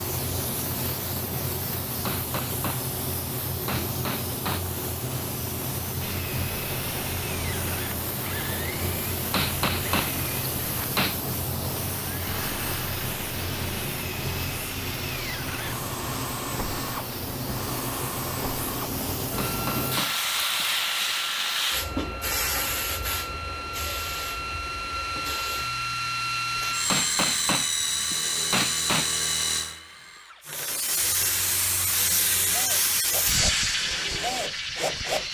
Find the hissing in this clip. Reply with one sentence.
The hissing can be heard from 0.0 to 27.0 s and from 30.4 to 35.3 s.